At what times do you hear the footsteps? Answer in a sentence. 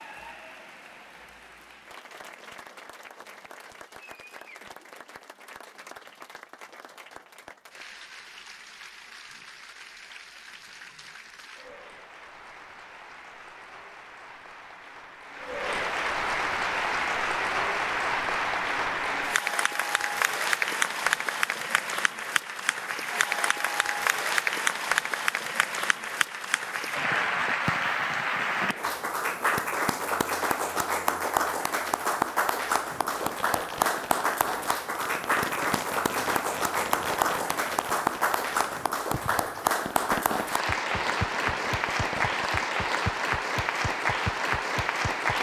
You can't hear the footsteps here.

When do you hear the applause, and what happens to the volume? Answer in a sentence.
You can hear the applause from 0.0 to 45.3 s, getting louder.